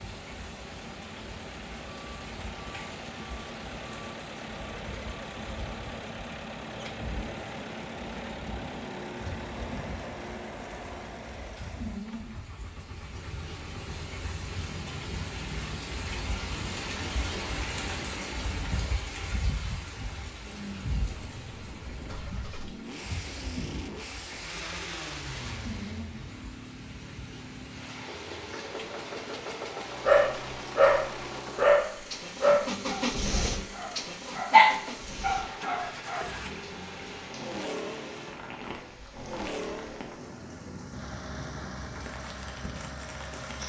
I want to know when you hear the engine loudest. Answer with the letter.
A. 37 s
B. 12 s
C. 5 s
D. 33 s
D.